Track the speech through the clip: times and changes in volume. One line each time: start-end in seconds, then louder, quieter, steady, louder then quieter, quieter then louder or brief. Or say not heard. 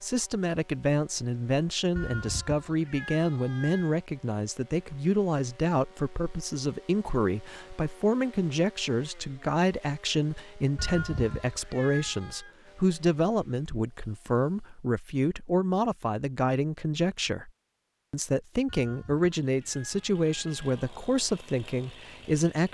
0.0-17.5 steady
18.1-22.7 quieter.